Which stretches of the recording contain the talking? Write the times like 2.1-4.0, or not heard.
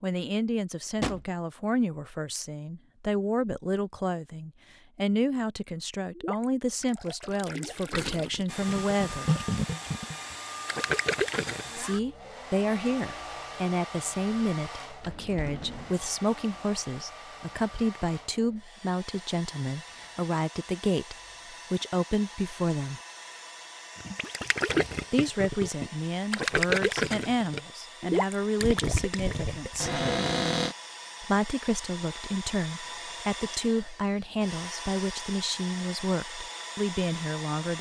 0.0-9.2, 11.8-23.0, 25.1-30.0, 31.2-37.7.